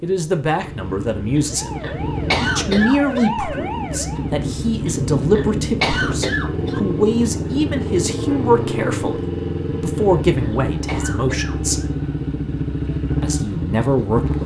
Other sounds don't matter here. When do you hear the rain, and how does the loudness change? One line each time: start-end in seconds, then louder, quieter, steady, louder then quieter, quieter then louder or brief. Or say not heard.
not heard.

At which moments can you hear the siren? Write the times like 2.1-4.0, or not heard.
1.4-4.3.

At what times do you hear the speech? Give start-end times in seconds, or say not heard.
0.0-11.8, 13.2-14.4.